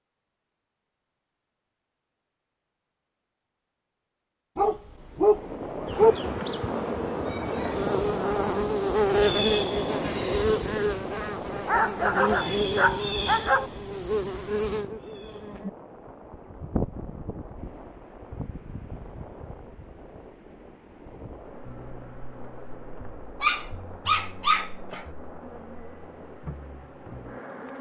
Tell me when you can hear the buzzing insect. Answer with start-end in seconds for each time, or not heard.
5.8-27.7.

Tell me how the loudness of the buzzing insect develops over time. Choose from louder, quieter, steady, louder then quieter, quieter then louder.
quieter.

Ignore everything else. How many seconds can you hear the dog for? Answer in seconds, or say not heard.
5 s.